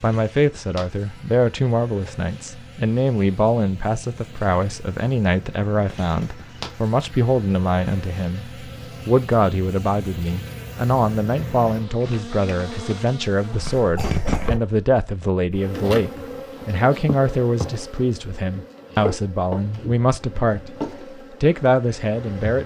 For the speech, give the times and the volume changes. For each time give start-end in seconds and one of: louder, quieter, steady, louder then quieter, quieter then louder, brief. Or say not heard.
0.0-20.7 steady
21.4-22.6 brief.